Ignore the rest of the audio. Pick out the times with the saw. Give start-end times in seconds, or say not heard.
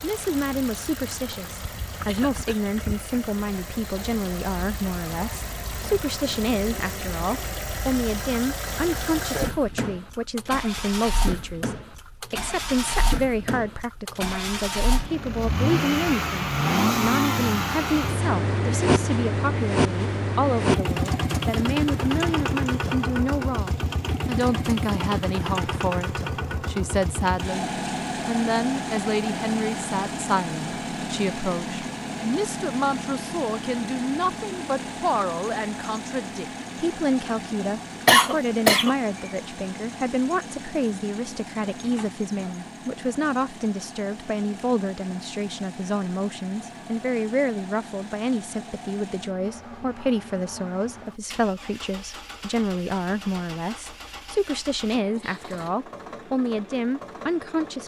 not heard.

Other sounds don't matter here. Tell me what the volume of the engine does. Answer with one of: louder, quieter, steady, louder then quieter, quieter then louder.
louder then quieter.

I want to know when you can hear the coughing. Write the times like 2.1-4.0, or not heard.
2.0-2.6, 38.0-39.0.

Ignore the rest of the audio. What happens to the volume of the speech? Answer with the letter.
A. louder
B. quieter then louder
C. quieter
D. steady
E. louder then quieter
D.